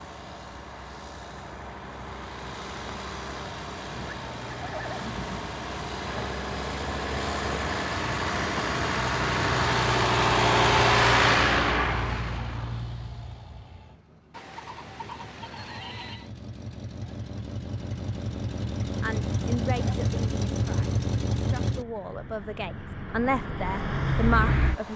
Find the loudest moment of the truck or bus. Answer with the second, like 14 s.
11 s.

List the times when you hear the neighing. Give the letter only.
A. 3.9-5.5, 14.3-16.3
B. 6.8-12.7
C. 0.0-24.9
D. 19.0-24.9
A.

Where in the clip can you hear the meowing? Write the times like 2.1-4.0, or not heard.
not heard.